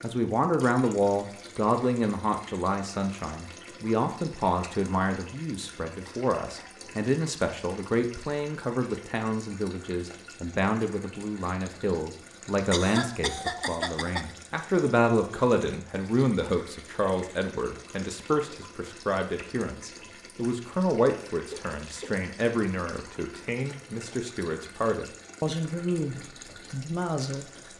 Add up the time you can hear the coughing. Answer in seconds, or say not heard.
3 s.